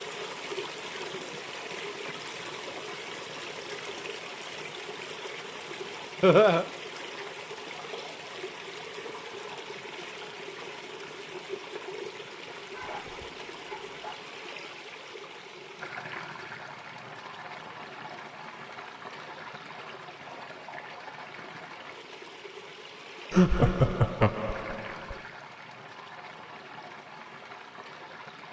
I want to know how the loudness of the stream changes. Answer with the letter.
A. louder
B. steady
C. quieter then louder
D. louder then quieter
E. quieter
E.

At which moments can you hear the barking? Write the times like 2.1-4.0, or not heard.
12.7-14.2.